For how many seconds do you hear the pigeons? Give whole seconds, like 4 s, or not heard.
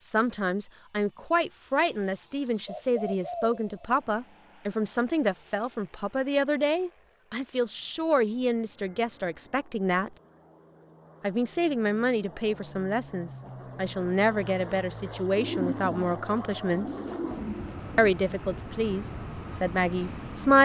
4 s.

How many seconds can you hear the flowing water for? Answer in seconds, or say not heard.
not heard.